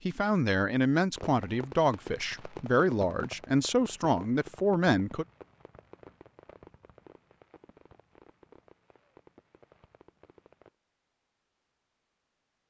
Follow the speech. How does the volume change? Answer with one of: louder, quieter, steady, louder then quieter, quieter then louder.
steady.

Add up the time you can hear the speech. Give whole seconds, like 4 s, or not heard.
5 s.